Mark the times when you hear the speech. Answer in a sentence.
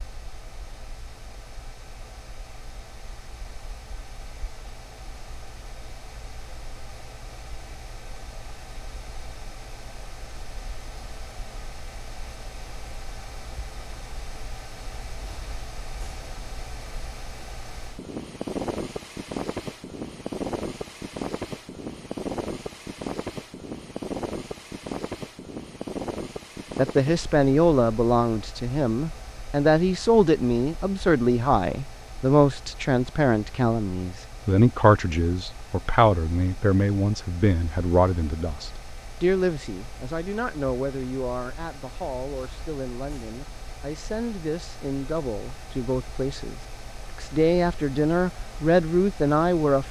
The speech can be heard from 26.8 to 49.8 s.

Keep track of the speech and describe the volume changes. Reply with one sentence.
The volume of the speech goes down, then up.